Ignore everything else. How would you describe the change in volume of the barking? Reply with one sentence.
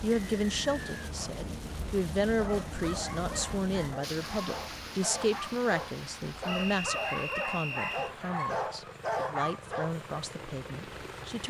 The loudness of the barking goes up.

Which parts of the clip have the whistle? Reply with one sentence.
You can hear the whistle from 0.1 to 1.1 s and from 6.5 to 8.1 s.